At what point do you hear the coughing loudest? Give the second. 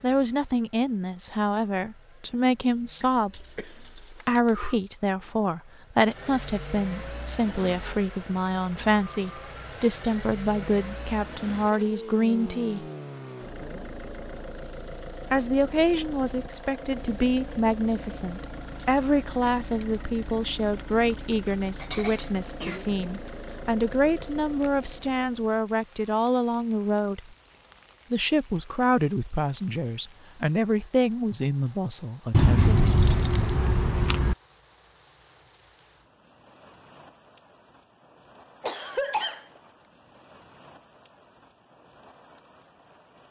39 s.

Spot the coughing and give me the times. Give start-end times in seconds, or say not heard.
3.0-4.2, 21.8-22.9, 38.6-39.5.